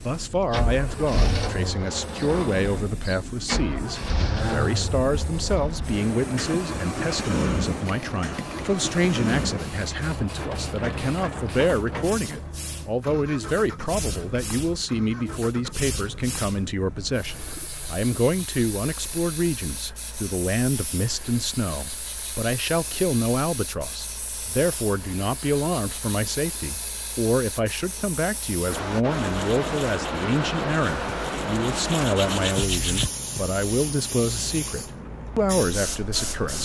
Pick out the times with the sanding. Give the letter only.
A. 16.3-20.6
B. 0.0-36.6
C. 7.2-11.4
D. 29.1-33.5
D.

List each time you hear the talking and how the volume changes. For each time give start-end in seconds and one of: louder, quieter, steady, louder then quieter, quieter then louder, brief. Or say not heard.
0.0-36.6 steady.